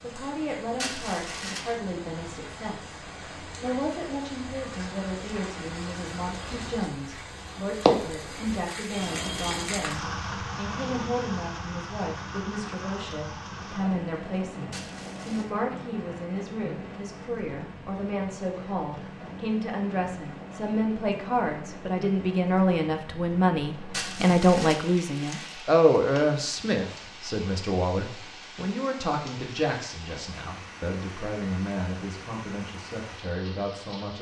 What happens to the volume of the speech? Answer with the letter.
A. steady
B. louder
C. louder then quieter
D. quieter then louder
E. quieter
C.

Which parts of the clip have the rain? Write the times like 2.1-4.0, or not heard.
0.0-34.1.